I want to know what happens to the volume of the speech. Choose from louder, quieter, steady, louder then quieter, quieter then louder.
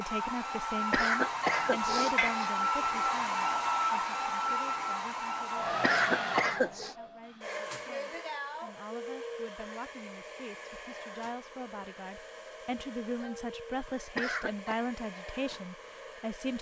quieter then louder.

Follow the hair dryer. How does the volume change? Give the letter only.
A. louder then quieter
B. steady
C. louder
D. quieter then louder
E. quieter
E.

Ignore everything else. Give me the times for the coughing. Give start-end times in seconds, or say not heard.
0.9-2.5, 5.8-7.0, 14.2-14.8.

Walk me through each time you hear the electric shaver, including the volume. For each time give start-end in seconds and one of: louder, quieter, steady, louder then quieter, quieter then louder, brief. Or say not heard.
not heard.